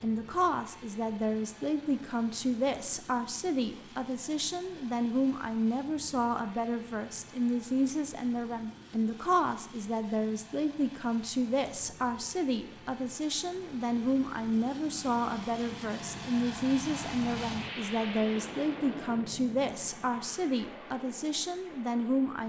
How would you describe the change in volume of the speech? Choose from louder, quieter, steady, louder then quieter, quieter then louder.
steady.